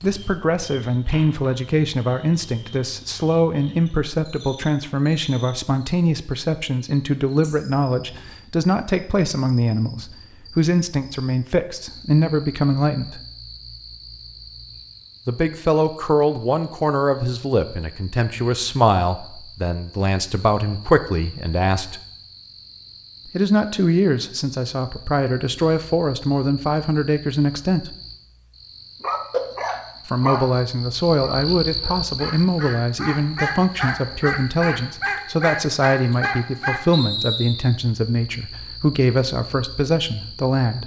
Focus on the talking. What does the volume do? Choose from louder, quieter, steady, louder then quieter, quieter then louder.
steady.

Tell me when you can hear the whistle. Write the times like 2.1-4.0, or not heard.
36.9-37.8.